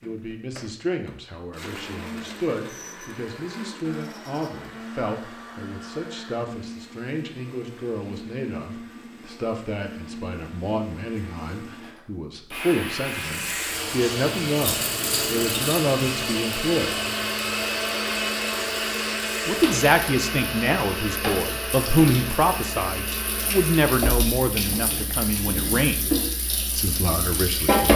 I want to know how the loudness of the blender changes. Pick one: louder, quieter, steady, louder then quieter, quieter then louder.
louder.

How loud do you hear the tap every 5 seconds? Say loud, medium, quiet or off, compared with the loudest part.
off, off, medium, medium, medium, loud.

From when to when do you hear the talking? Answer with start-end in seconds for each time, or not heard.
0.0-16.9, 19.4-26.1, 26.8-27.9.